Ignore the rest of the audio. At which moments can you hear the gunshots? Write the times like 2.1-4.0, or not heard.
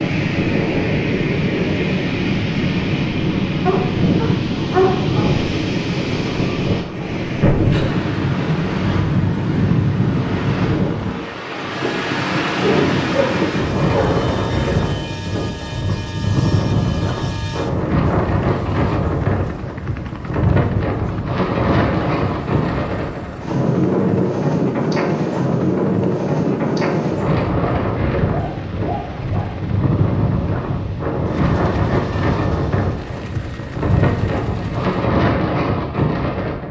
not heard.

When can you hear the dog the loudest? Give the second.
5 s.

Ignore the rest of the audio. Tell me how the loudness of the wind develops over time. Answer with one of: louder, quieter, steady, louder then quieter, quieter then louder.
steady.